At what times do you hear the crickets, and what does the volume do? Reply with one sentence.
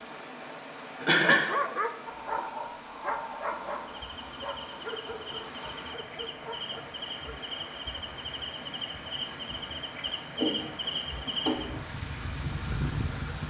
You can hear the crickets from 0.0 to 13.4 s, getting louder.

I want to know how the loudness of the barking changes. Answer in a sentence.
The volume of the barking goes down.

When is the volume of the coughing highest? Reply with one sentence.
The loudest moment of the coughing is at 1 second.